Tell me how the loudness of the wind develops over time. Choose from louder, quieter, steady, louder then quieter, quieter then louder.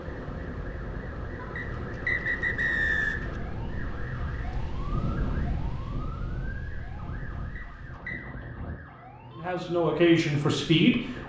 louder then quieter.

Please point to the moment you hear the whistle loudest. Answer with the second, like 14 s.
3 s.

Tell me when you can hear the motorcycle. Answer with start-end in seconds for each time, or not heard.
not heard.